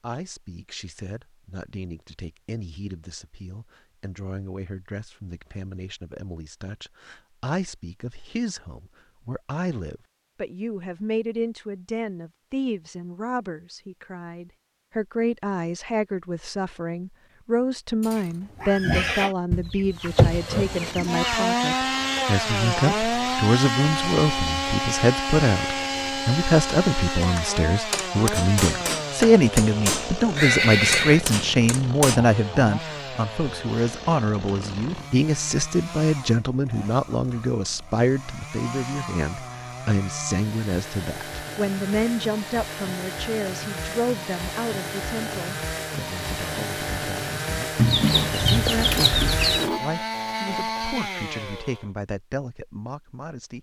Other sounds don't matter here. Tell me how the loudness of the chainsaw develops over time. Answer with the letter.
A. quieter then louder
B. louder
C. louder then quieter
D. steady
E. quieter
A.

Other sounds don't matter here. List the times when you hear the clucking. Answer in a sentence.
You can hear the clucking from 19.5 to 21.2 s and from 47.8 to 49.6 s.